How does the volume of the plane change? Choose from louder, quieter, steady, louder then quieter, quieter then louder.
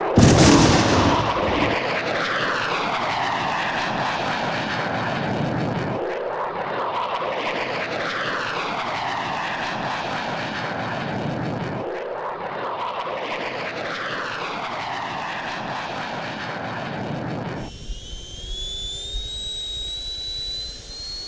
quieter.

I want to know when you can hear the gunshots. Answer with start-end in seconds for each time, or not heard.
0.1-1.8.